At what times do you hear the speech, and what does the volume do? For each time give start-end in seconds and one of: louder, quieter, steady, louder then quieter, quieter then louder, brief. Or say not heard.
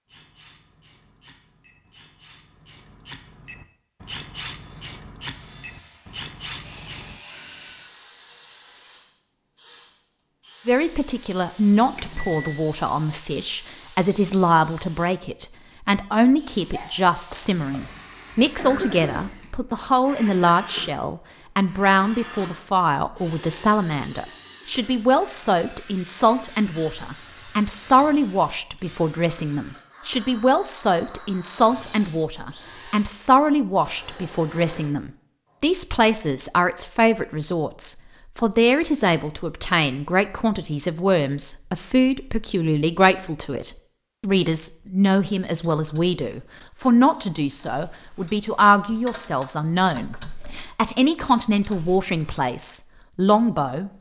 10.7-53.9 steady.